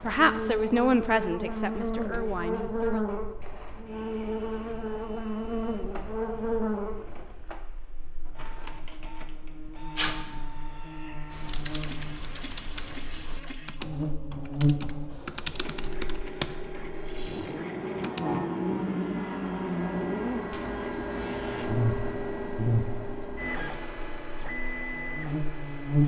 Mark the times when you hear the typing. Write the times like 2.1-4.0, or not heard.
11.3-18.3.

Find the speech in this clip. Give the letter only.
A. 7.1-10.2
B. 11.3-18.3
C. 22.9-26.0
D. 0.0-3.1
D.